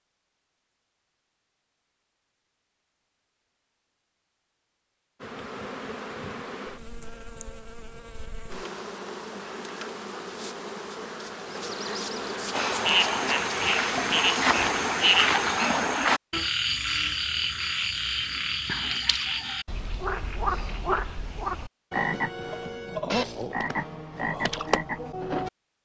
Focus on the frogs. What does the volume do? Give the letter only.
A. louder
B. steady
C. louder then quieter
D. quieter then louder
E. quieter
E.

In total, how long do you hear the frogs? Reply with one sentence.
You can hear the frogs for 13 seconds altogether.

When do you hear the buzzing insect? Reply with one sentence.
The buzzing insect can be heard from 5.2 to 15.7 s.